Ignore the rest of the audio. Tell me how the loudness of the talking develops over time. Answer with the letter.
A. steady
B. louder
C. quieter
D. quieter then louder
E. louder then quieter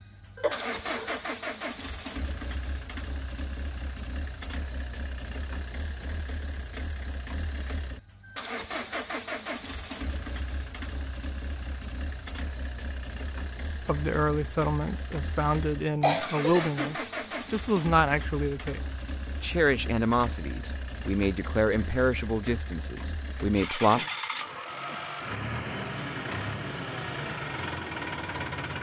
A.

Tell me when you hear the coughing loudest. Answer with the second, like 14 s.
16 s.